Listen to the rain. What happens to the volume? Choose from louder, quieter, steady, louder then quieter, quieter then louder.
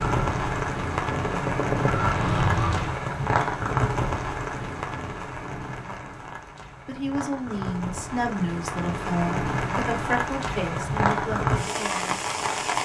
quieter then louder.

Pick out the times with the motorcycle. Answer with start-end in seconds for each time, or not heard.
0.0-3.0.